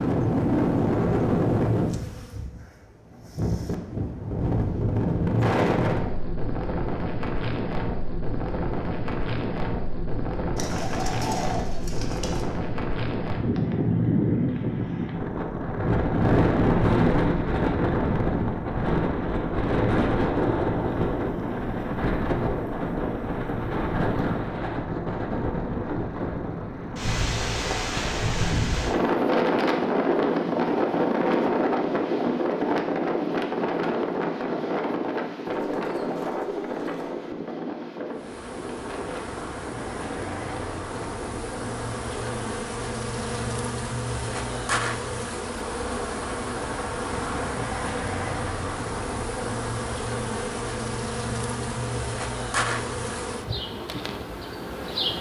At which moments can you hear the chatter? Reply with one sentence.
The chatter can't be heard in this clip.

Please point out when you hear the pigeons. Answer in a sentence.
You can hear the pigeons from 10.6 to 12.4 s and from 35.5 to 37.1 s.